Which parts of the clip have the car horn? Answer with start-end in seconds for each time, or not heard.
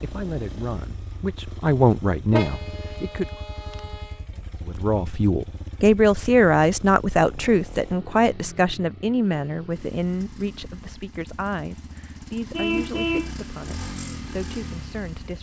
2.3-4.2, 12.5-13.3.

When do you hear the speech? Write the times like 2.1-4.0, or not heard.
0.0-3.2, 4.7-15.3.